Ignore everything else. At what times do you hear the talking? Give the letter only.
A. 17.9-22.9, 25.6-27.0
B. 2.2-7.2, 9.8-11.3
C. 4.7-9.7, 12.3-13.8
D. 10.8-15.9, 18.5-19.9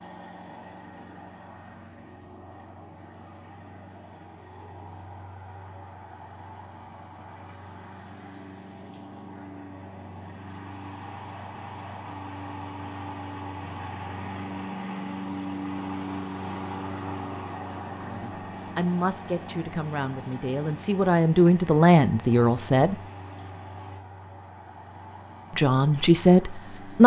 A.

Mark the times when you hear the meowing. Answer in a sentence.
The meowing can't be heard in this clip.